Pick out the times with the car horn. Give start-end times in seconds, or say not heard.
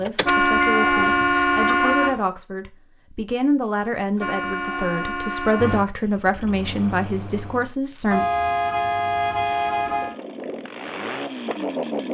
0.2-2.2, 4.2-5.8, 8.1-10.2.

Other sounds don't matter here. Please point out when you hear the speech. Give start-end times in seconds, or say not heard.
0.0-8.2.